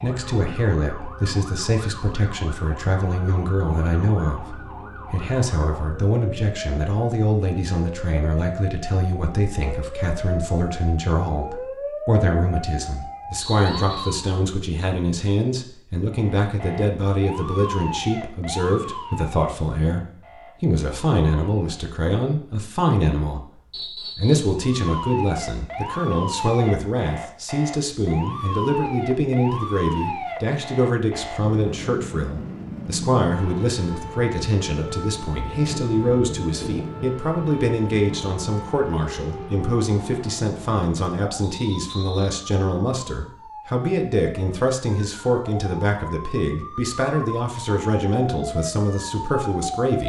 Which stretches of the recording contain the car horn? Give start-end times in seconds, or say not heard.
not heard.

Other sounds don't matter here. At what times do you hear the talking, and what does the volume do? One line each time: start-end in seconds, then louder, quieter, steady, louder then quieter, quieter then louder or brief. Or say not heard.
0.0-50.0 steady.